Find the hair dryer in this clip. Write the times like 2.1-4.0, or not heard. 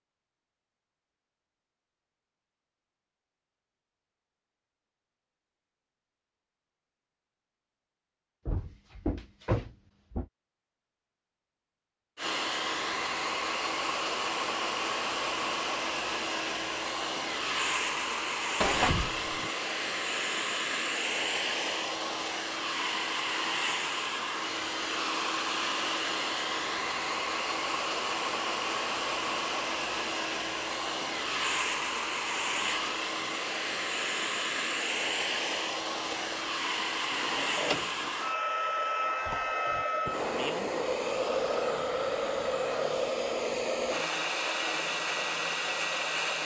12.2-46.4.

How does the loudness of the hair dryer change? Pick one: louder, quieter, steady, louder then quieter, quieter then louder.
steady.